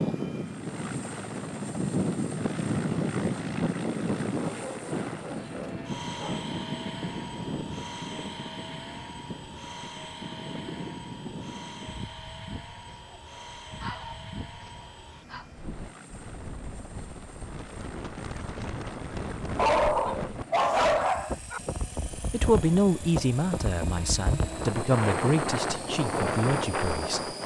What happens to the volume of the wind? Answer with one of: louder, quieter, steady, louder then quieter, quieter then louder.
quieter then louder.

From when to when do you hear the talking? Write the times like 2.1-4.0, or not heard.
22.1-27.4.